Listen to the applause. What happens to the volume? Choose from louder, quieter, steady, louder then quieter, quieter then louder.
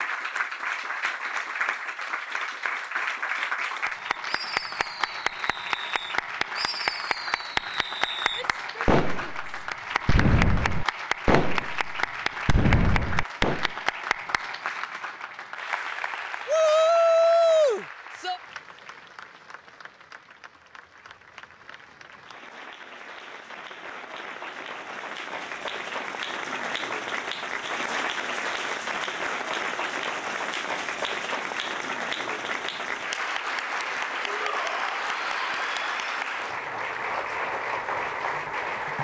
quieter then louder.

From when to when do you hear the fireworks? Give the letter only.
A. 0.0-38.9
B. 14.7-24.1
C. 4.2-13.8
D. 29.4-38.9
C.